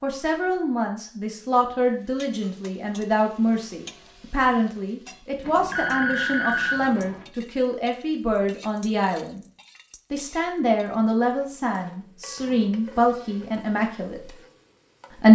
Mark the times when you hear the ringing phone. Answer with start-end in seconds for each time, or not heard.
5.4-7.2.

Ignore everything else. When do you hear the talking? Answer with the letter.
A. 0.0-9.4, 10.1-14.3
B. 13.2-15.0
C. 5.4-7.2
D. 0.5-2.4
A.